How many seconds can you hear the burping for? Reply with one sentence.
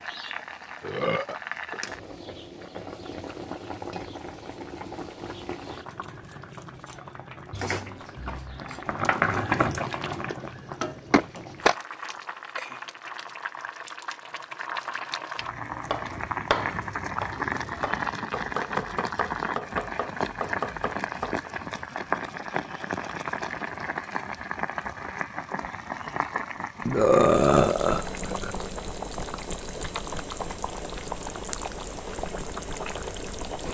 The burping can be heard for 3 seconds in total.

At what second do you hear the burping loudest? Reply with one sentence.
The volume of the burping peaks at 27 seconds.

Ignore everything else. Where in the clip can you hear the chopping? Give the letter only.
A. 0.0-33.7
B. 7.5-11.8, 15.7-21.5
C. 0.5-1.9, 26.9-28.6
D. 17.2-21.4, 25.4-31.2
B.